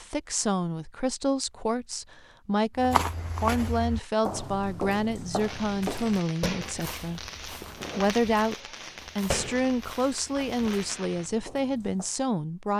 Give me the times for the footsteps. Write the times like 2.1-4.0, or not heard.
2.8-12.2.